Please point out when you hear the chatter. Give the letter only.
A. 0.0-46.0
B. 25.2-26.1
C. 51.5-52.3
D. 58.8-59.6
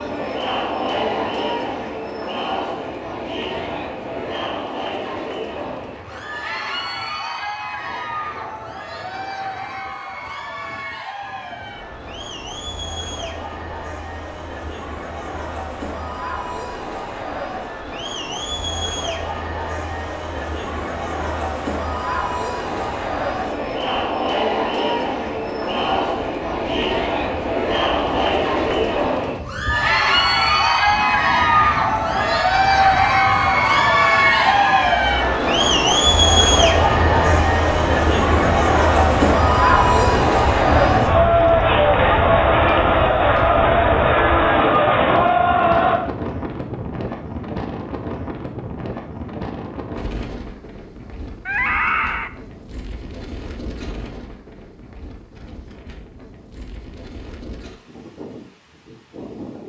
A.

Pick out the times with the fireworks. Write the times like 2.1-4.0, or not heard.
not heard.